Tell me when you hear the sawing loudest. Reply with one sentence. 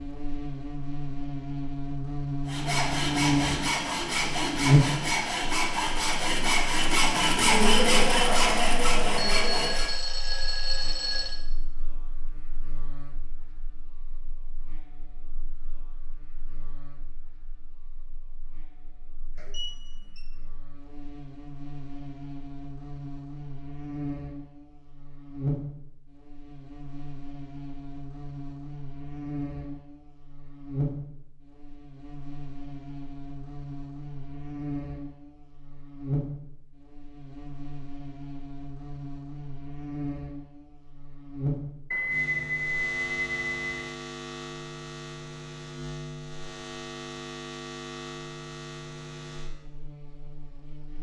The loudest moment of the sawing is at 8 seconds.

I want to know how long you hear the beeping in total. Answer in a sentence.
You can hear the beeping for 5 seconds altogether.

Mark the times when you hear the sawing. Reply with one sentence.
You can hear the sawing from 2.5 to 9.9 s.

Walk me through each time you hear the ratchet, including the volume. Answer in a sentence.
You can't hear the ratchet here.